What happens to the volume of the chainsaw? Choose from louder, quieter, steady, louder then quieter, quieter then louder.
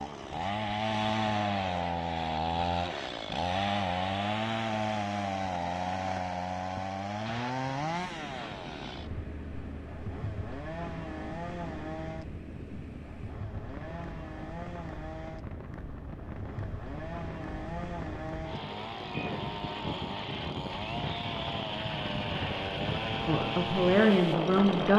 quieter then louder.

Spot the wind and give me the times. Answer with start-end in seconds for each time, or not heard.
7.8-24.9.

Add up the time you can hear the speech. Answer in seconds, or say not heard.
2 s.